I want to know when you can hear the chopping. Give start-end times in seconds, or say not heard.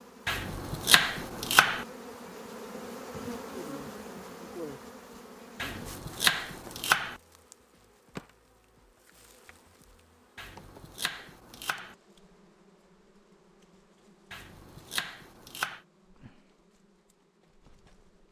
0.2-1.9, 5.6-7.2, 10.3-11.9, 14.3-15.8.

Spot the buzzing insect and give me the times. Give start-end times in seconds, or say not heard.
0.0-18.2.